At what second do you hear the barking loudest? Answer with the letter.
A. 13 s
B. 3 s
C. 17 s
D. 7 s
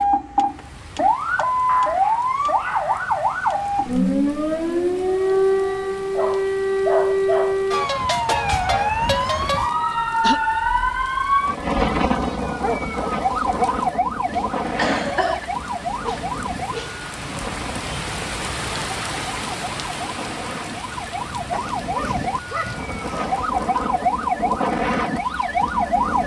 D.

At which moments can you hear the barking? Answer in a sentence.
You can hear the barking from 1.6 to 3.2 s, from 6.2 to 7.7 s, from 12.4 to 13.8 s, from 16.0 to 17.1 s and from 21.5 to 23.4 s.